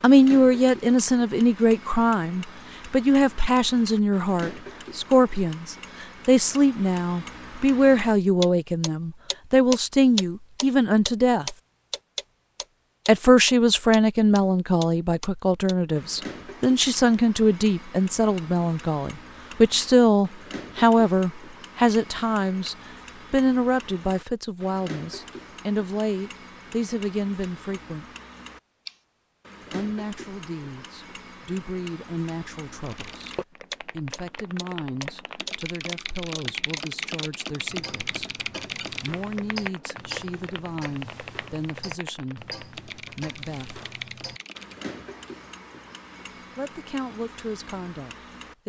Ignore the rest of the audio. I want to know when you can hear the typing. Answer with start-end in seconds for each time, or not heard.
32.8-44.8.